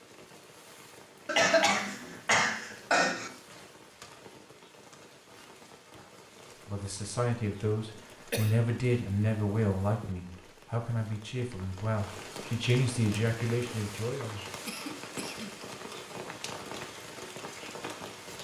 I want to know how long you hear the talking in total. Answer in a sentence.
The talking can be heard for 8 seconds in total.